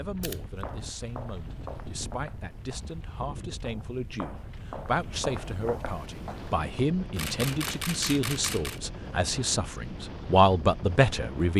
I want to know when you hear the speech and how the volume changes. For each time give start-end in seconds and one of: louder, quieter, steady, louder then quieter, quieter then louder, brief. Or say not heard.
0.0-11.5 louder.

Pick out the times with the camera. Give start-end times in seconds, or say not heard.
0.2-0.7, 7.2-8.8.